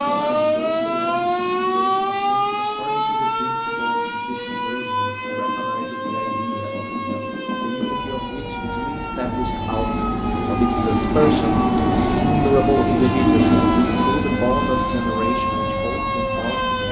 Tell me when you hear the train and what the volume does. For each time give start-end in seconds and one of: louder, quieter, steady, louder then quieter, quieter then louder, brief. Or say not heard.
0.0-16.8 louder.